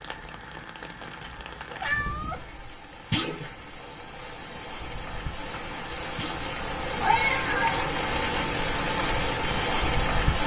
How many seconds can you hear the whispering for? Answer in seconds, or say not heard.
not heard.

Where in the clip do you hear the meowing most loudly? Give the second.
7 s.